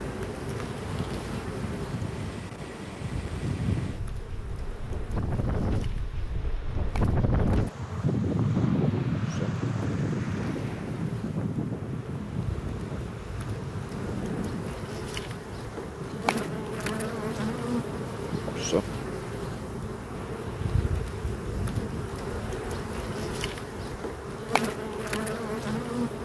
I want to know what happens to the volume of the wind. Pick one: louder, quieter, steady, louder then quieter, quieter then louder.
louder then quieter.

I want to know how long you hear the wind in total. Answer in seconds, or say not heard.
22 s.